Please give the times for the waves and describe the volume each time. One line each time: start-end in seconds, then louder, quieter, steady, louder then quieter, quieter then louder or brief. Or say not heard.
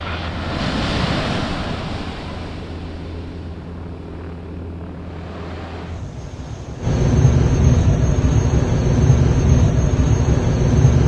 0.0-7.0 quieter then louder.